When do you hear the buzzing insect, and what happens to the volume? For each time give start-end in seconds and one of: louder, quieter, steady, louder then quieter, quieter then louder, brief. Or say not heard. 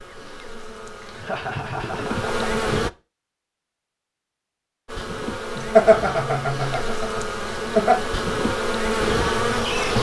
0.0-2.9 brief
4.8-9.9 louder.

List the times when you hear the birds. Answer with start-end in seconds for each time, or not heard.
not heard.